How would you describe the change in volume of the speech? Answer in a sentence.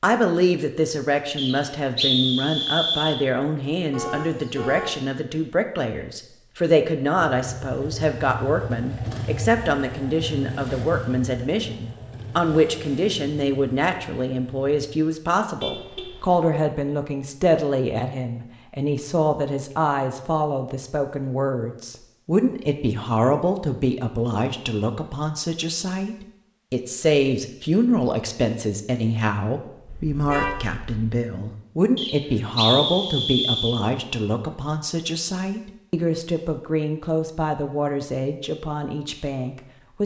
The volume of the speech stays about the same.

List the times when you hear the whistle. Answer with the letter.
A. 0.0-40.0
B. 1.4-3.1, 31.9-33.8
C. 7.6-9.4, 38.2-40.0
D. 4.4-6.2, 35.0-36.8
B.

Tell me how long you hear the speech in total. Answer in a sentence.
You can hear the speech for 40 seconds altogether.